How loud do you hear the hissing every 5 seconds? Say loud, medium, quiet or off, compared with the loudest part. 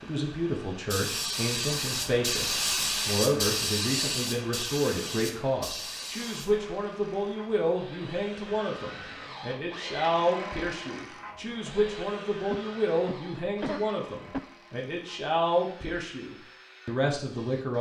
loud, medium, off, off.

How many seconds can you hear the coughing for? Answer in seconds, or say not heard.
2 s.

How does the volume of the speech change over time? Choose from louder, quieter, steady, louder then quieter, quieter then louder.
steady.